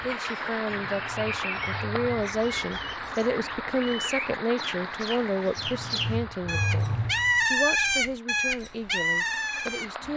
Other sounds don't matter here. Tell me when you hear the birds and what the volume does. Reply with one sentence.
You can hear the birds from 0.0 to 10.1 s, getting louder.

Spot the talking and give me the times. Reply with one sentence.
You can hear the talking from 0.0 to 10.1 s.